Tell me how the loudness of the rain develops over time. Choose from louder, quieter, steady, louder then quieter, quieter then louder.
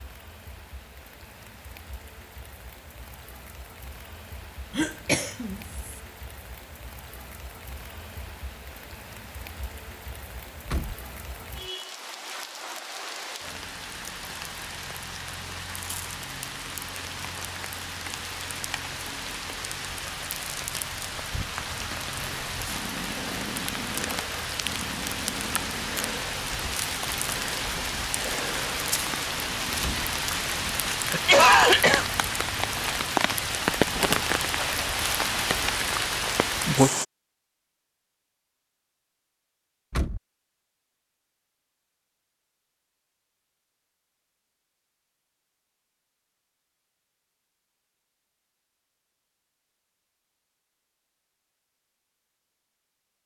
louder.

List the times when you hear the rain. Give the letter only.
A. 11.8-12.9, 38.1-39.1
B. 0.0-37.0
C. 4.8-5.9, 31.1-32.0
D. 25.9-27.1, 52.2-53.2
B.